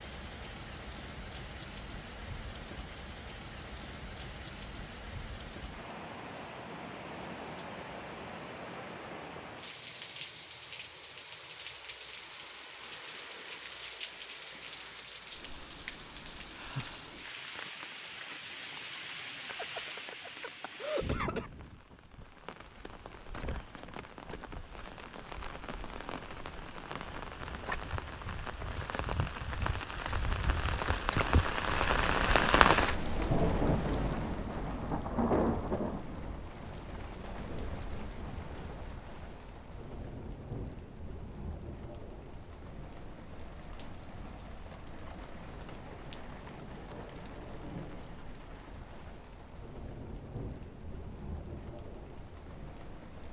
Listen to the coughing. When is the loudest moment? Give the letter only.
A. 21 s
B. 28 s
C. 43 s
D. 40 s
A.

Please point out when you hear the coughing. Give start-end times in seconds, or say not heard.
19.4-21.5.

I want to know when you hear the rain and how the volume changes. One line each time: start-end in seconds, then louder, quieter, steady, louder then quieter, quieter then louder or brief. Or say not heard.
0.0-53.2 louder then quieter.